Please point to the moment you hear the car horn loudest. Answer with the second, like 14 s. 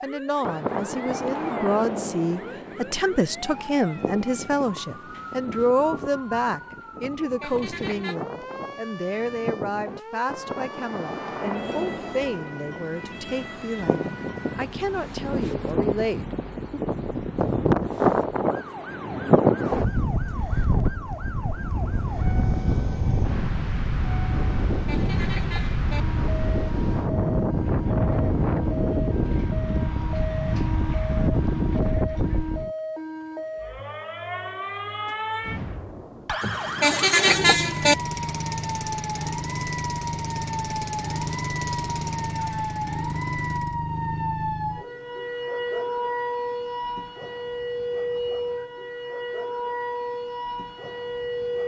37 s.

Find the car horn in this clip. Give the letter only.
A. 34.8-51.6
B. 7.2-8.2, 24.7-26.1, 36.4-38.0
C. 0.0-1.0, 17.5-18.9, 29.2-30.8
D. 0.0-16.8
B.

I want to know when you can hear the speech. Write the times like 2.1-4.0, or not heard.
0.0-16.8.